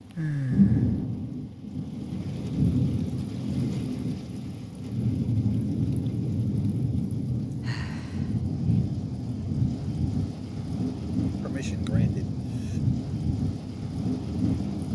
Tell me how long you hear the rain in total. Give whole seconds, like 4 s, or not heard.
15 s.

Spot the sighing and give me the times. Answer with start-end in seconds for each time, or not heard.
0.1-1.1, 7.7-8.3, 11.4-12.8.